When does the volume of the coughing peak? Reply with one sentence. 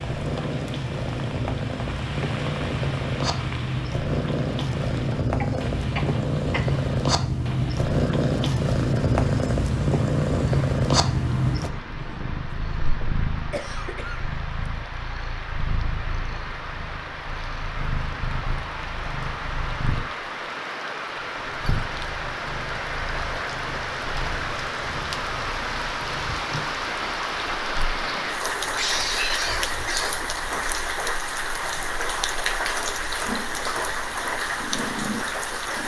The loudest moment of the coughing is at 29 seconds.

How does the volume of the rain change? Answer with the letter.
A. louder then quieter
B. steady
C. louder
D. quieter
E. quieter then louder
C.